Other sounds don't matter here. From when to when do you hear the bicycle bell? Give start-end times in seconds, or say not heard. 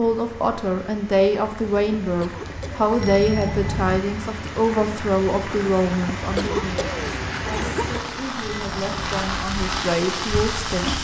3.0-4.0, 8.4-9.2.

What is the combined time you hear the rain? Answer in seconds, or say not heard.
11 s.